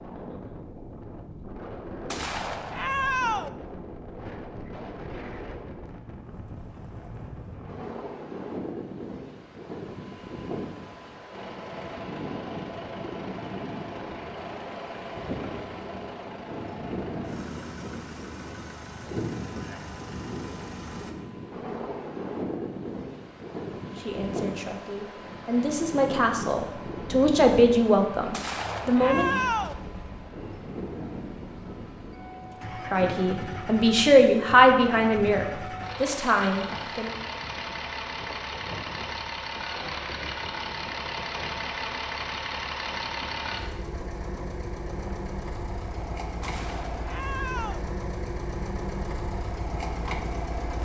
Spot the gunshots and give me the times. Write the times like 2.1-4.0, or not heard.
2.1-3.5, 28.3-29.8, 46.4-47.9.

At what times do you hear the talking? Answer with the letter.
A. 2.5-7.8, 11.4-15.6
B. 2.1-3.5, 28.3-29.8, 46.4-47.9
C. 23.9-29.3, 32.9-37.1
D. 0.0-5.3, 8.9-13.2
C.